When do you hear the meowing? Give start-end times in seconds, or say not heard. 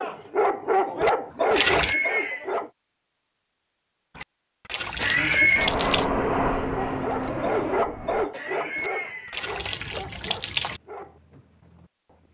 not heard.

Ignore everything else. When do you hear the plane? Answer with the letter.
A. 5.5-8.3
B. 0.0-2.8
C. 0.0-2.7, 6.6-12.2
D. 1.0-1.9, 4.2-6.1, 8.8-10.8
A.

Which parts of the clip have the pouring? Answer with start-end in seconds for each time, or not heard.
1.0-1.9, 4.2-6.1, 8.8-10.8.